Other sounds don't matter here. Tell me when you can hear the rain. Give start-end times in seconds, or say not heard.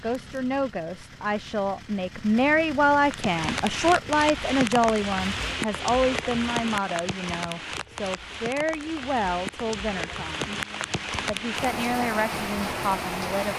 2.9-13.5.